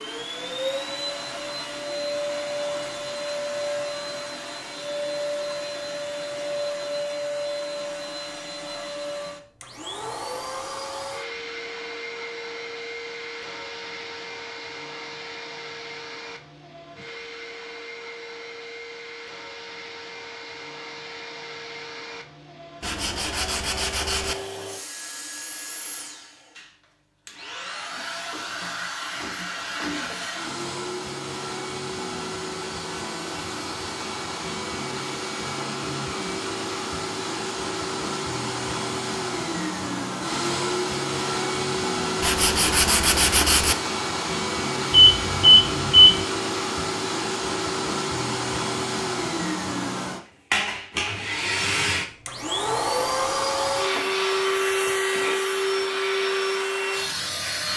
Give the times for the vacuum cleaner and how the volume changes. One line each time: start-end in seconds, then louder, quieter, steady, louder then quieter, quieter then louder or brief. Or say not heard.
0.0-57.7 quieter then louder.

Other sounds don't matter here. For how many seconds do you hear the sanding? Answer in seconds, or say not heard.
3 s.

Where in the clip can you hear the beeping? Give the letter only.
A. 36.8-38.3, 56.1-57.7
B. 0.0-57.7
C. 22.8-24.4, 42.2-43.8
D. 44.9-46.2
D.